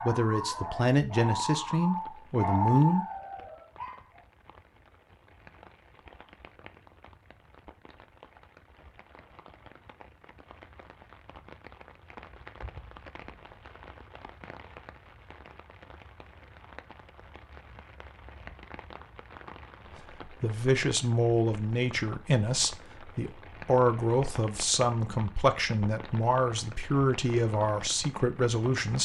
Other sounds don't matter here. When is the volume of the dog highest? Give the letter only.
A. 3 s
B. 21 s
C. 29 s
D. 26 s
A.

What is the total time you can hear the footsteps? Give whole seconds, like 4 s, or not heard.
not heard.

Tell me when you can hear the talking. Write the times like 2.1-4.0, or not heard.
0.0-3.0, 20.2-29.0.